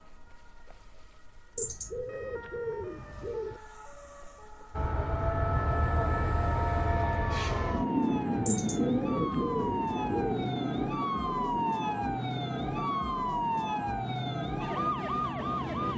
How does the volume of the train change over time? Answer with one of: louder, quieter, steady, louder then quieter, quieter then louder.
quieter.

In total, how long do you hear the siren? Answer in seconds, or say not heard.
16 s.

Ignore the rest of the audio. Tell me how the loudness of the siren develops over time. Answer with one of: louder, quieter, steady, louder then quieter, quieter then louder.
louder.